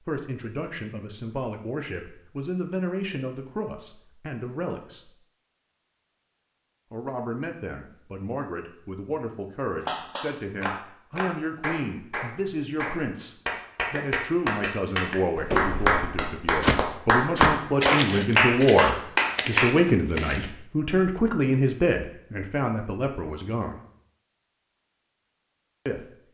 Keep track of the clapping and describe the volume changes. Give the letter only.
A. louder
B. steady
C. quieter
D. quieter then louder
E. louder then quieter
A.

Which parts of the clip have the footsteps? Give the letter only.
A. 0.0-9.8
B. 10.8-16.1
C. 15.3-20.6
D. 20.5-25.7
C.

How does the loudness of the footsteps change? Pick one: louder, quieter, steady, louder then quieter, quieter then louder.
louder then quieter.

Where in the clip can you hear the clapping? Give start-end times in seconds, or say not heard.
9.8-19.7.